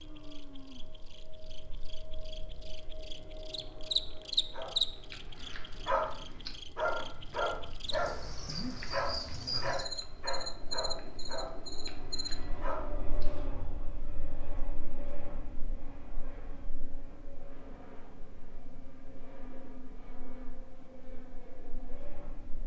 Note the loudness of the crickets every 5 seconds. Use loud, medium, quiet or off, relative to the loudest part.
loud, medium, loud, off, off.